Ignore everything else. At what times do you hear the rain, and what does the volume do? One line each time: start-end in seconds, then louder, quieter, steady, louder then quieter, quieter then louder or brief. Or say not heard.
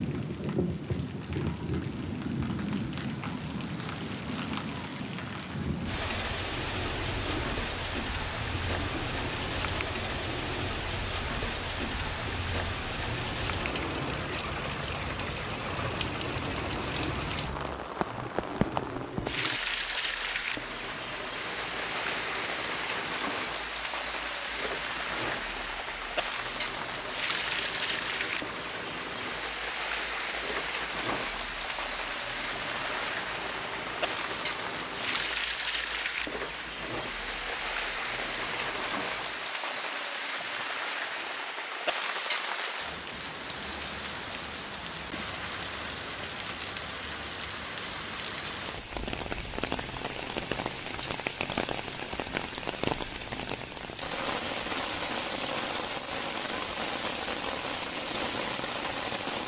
0.0-59.4 steady.